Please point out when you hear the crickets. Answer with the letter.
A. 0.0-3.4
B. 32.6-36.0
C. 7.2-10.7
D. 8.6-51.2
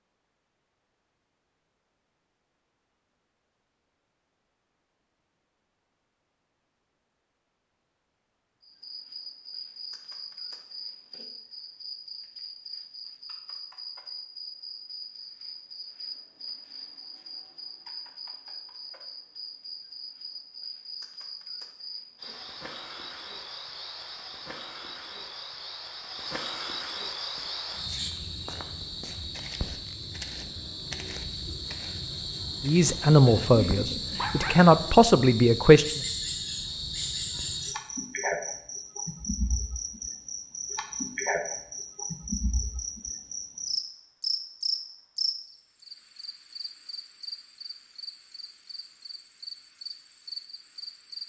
D.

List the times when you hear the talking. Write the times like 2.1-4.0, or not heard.
32.6-36.0.